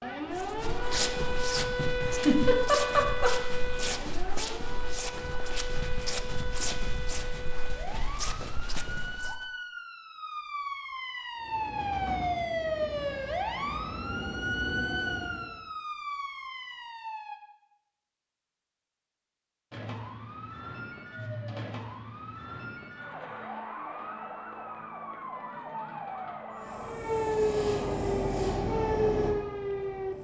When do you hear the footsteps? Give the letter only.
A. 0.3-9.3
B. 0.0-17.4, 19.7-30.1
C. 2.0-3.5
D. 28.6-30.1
A.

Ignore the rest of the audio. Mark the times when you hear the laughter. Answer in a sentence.
You can hear the laughter from 2.0 to 3.5 s.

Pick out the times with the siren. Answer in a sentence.
The siren can be heard from 0.0 to 17.4 s and from 19.7 to 30.1 s.